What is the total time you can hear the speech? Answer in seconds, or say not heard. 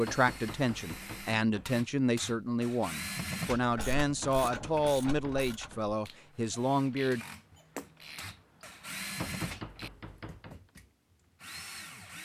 7 s.